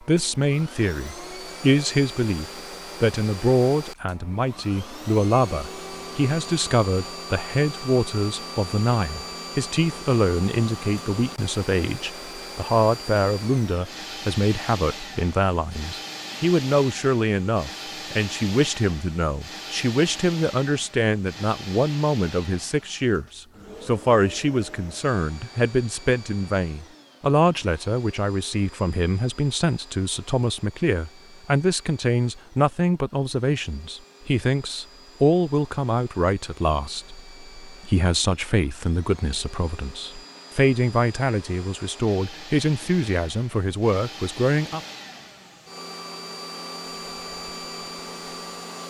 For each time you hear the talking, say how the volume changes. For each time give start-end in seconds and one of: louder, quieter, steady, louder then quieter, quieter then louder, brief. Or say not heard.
0.0-44.8 steady.